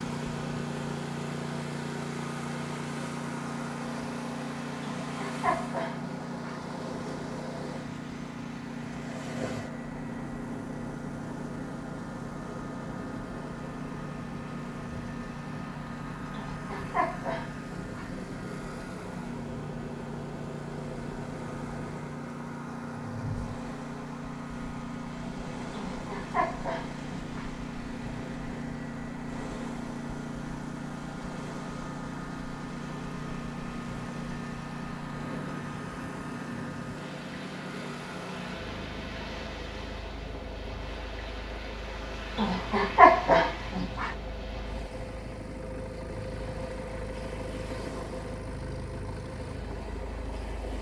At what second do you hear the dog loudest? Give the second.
43 s.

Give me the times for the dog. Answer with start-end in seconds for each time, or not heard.
4.8-6.6, 16.4-18.1, 25.7-27.5, 42.4-44.1.